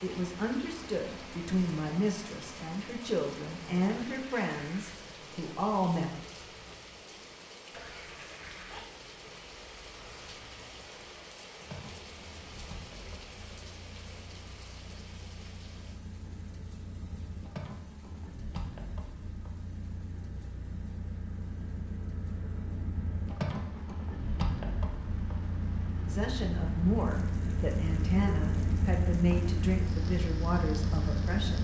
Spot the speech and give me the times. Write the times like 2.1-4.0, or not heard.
0.0-6.1, 26.1-31.5.